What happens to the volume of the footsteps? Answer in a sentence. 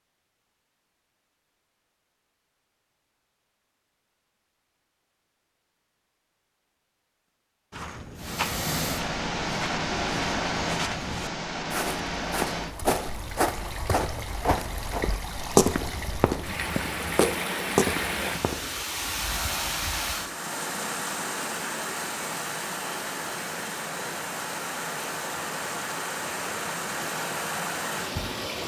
The volume of the footsteps goes up.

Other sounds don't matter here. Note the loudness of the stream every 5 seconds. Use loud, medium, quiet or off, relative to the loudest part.
off, loud, loud, loud, loud, loud.